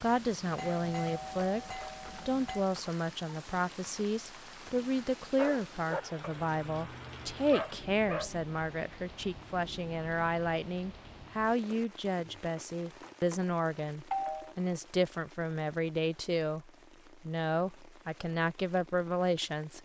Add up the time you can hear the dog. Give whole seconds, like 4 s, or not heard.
3 s.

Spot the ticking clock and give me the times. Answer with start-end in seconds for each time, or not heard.
not heard.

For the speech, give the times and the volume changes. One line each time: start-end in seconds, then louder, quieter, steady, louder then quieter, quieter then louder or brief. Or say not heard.
0.0-19.8 steady.